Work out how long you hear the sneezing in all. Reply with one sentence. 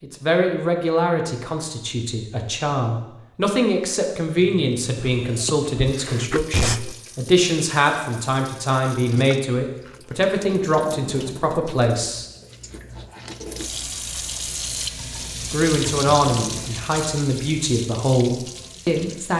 You can hear the sneezing for 2 seconds altogether.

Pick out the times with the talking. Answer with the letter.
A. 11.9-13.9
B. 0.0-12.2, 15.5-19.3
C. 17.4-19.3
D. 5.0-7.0
B.